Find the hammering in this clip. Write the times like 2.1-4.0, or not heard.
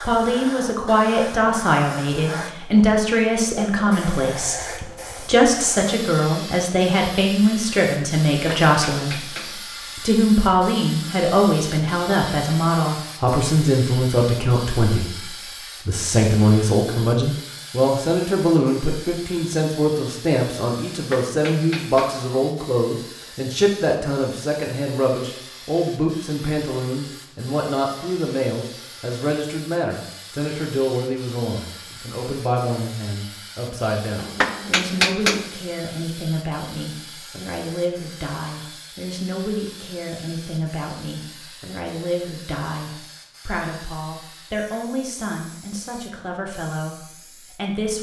8.3-9.6, 20.9-22.2, 34.1-35.5.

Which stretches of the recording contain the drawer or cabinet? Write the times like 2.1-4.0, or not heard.
not heard.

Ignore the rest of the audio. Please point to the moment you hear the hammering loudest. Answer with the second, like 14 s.
35 s.